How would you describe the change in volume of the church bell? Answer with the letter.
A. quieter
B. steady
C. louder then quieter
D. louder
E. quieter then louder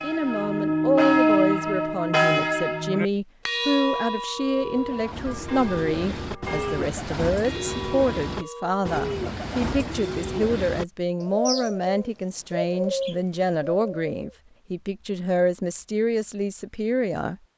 A.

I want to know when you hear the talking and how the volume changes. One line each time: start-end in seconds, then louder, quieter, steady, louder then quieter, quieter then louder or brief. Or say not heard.
0.0-17.4 steady.